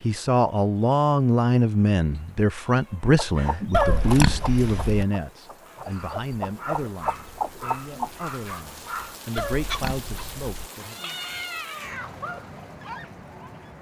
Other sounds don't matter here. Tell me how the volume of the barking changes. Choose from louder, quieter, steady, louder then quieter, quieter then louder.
steady.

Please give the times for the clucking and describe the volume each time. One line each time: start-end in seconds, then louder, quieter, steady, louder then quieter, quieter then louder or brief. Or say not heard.
3.1-8.2 quieter then louder.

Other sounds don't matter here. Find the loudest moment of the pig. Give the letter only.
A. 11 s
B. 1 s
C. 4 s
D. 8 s
C.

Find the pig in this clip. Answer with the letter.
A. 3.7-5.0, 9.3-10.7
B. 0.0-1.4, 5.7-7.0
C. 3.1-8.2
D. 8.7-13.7
A.